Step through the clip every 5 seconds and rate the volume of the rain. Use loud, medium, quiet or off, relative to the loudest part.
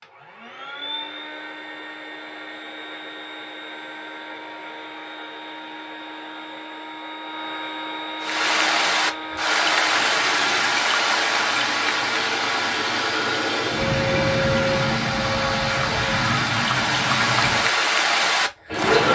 off, loud, loud, loud.